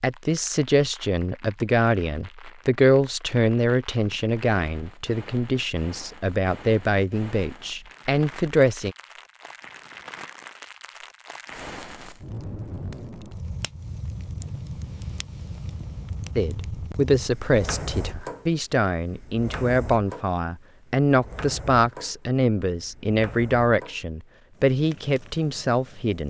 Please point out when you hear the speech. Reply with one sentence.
You can hear the speech from 0.0 to 8.9 s and from 16.4 to 26.2 s.